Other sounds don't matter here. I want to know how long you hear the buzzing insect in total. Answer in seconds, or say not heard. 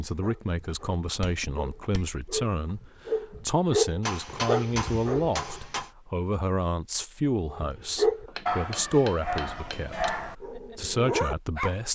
not heard.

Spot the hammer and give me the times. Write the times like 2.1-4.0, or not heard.
1.2-2.1, 4.0-5.9, 8.2-10.2.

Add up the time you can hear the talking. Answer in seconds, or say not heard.
12 s.